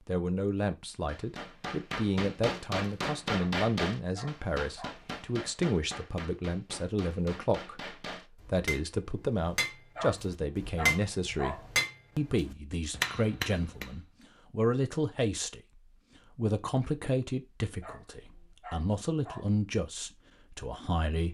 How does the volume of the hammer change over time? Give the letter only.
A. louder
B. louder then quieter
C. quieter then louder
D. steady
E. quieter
C.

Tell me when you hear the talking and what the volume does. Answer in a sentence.
The talking can be heard from 0.0 to 21.2 s, at a steady volume.